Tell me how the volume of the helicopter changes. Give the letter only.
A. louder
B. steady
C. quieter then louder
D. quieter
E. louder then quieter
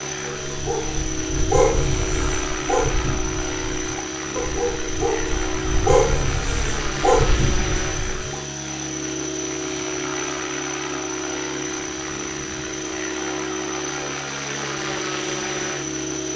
B.